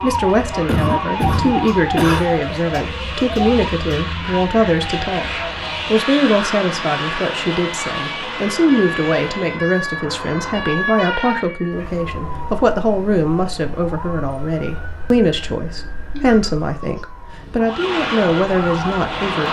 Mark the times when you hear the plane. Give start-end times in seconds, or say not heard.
0.0-9.7, 17.6-19.4.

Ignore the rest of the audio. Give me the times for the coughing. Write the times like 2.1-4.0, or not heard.
0.7-2.3, 16.1-17.1.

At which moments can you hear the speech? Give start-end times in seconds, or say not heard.
0.0-19.4.